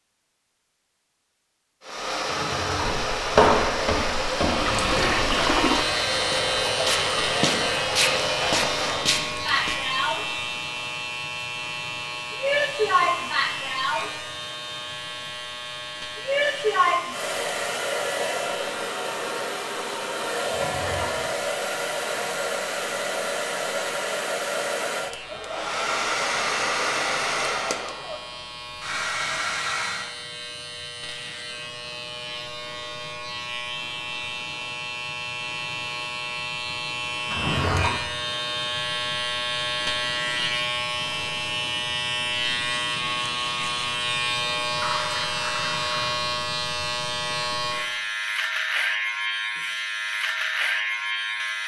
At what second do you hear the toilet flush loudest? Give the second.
5 s.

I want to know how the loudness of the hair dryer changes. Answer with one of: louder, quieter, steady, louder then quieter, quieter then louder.
steady.